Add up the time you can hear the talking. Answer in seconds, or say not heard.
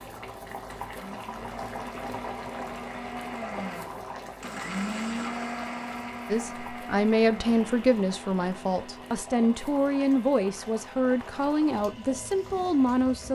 7 s.